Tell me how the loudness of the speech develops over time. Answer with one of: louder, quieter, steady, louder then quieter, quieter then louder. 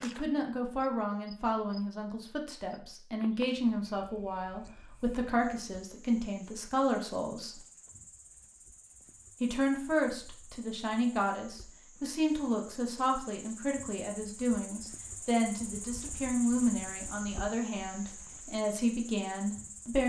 steady.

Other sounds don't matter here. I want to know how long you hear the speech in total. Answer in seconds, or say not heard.
18 s.